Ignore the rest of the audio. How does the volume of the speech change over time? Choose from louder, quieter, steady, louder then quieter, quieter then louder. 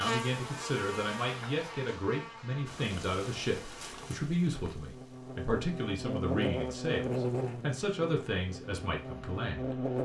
steady.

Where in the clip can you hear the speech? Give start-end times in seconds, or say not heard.
0.0-9.8.